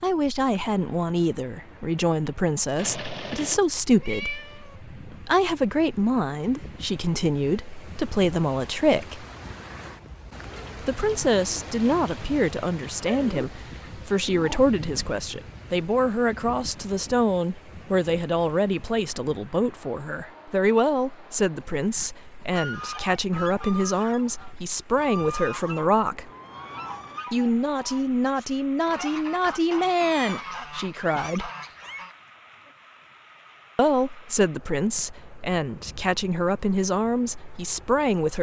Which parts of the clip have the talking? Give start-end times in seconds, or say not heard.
0.0-9.2, 10.8-26.3, 27.3-31.5, 33.8-38.3.